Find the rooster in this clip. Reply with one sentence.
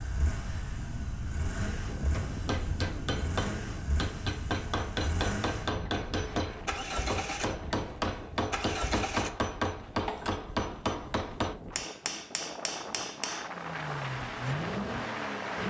The rooster can't be heard in this clip.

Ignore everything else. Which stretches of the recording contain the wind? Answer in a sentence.
The wind can be heard from 0.0 to 15.6 s.